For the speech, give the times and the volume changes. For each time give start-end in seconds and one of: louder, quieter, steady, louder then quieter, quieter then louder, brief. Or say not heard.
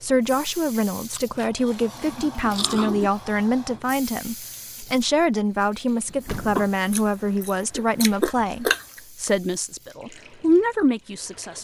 0.0-11.5 steady.